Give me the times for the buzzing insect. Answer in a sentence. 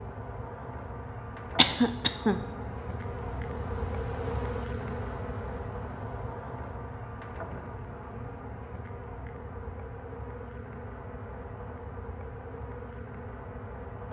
You can hear the buzzing insect from 0.0 to 14.0 s.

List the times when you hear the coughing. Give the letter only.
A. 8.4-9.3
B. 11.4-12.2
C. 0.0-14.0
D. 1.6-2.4
D.